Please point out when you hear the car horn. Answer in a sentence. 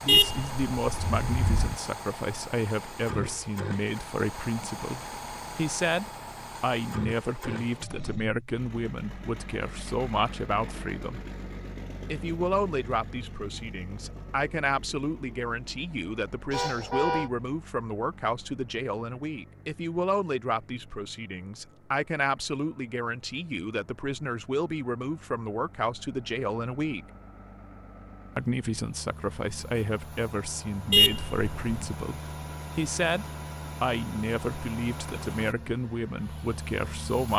You can hear the car horn from 0.1 to 1.8 s, from 16.5 to 17.3 s and from 30.9 to 31.8 s.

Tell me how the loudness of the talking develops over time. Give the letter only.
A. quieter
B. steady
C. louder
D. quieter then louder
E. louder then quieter
B.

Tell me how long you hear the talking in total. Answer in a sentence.
You can hear the talking for 35 seconds altogether.